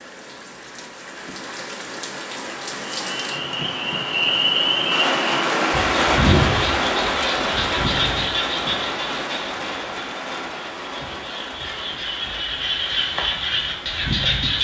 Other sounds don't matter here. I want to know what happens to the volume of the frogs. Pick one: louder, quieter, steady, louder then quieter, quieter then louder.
quieter then louder.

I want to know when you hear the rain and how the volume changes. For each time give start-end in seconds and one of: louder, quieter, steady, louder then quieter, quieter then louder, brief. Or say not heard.
0.0-14.5 louder then quieter.